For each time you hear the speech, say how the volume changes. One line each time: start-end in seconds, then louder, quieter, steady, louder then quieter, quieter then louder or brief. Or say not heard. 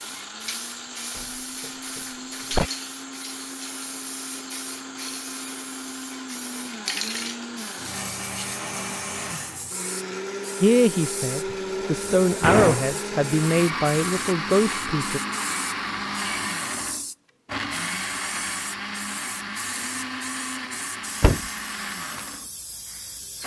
10.6-15.2 louder.